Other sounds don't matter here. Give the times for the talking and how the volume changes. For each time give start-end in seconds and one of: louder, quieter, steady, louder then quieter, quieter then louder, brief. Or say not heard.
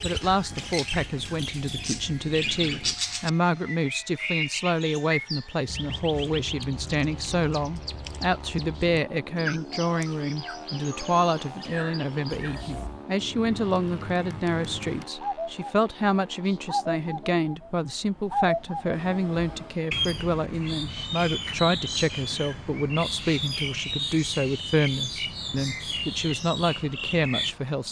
0.0-27.8 steady.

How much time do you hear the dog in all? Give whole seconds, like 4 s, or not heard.
not heard.